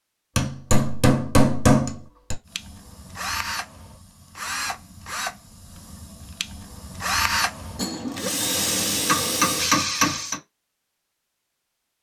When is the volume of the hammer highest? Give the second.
2 s.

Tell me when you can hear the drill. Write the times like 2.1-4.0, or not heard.
2.5-10.3.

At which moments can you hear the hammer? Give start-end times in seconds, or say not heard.
0.3-2.4, 9.1-10.3.